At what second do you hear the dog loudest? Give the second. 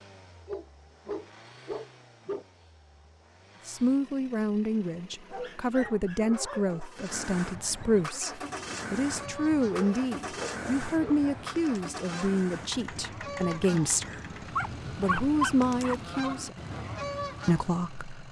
15 s.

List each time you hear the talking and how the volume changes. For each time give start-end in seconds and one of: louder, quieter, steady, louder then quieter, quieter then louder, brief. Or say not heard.
3.6-14.2 steady
14.9-16.6 brief
17.4-18.1 brief.